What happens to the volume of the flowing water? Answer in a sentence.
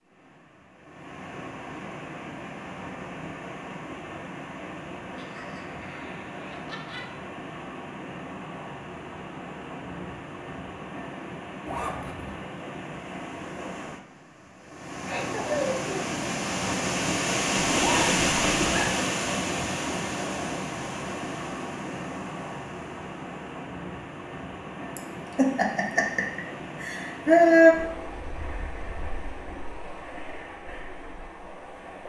The volume of the flowing water goes up, then down.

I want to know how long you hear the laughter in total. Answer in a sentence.
The laughter can be heard for 6 seconds in total.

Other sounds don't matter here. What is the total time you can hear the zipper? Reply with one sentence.
The zipper can be heard for 2 seconds in total.